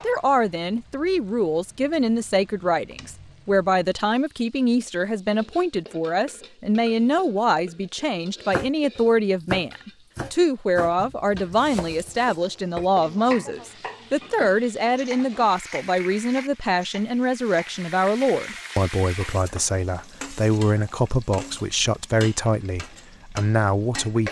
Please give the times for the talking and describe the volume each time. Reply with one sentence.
You can hear the talking from 0.0 to 24.2 s, at a steady volume.